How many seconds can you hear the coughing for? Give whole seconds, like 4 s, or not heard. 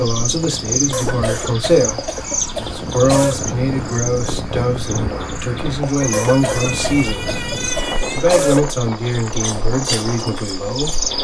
5 s.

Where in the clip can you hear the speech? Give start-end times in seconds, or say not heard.
0.0-7.3, 8.1-11.1.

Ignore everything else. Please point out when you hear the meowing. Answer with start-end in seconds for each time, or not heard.
6.0-8.2.